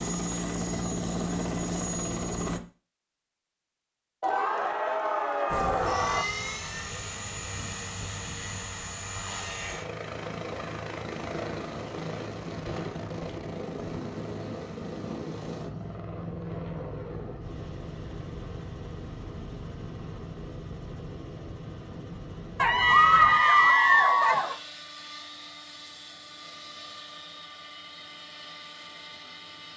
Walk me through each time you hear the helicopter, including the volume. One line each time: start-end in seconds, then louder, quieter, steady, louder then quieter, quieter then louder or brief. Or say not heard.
0.0-2.6 brief
5.5-29.7 quieter.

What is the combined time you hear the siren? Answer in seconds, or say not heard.
not heard.